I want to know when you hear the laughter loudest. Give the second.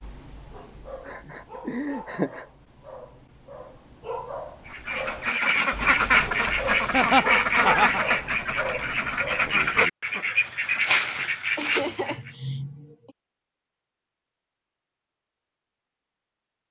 7 s.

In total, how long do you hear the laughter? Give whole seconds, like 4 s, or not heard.
4 s.